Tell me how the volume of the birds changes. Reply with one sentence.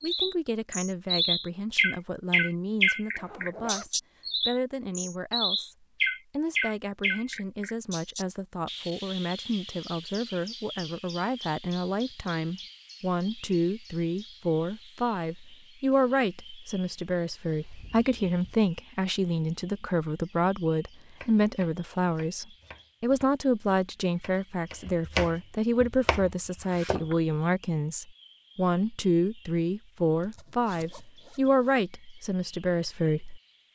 The loudness of the birds goes down.